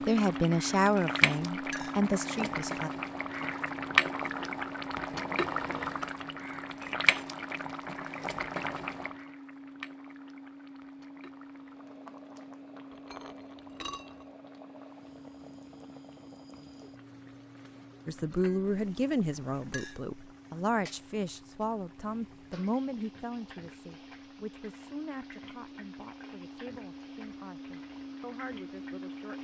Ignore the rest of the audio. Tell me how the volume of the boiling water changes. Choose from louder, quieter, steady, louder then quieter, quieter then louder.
quieter.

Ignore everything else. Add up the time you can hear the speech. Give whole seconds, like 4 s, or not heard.
14 s.